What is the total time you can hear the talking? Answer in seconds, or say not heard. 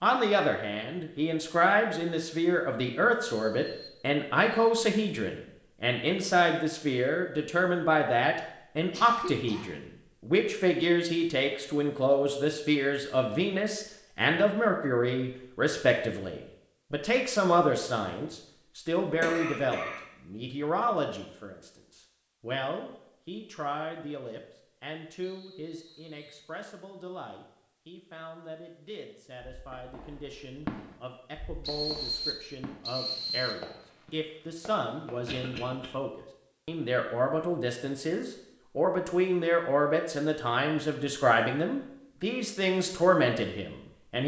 44 s.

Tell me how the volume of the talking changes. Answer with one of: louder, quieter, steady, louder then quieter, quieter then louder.
quieter then louder.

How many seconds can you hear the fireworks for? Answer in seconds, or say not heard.
6 s.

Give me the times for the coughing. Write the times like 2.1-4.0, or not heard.
8.9-9.7, 19.2-20.0, 35.2-35.9.